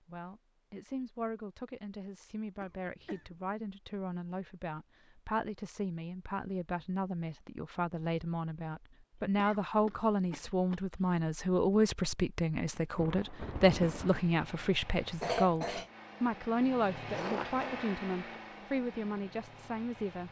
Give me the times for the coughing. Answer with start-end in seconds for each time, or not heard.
2.6-3.4, 9.3-11.1, 15.2-15.9.